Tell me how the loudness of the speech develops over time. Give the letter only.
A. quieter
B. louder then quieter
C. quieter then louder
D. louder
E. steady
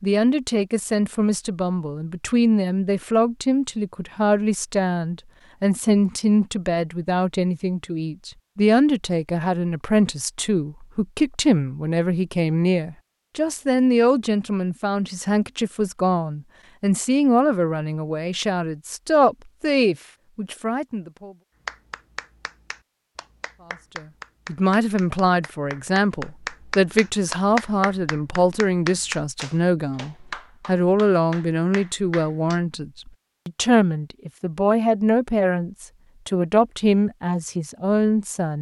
E.